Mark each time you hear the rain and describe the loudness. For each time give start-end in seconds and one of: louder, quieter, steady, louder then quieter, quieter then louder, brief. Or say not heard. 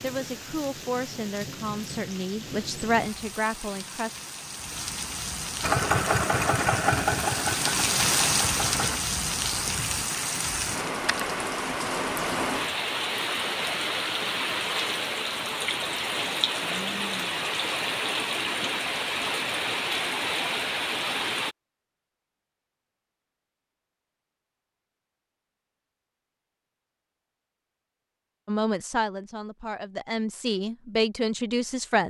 0.0-21.6 louder.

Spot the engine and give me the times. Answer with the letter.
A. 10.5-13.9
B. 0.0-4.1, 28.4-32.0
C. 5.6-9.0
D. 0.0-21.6
C.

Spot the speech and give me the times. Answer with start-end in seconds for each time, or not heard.
0.0-4.1, 28.4-32.0.